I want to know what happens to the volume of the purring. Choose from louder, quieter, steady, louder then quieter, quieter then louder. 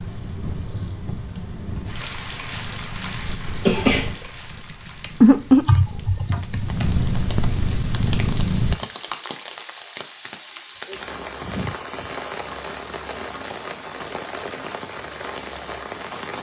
louder then quieter.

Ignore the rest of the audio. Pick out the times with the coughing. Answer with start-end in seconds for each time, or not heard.
3.6-4.2.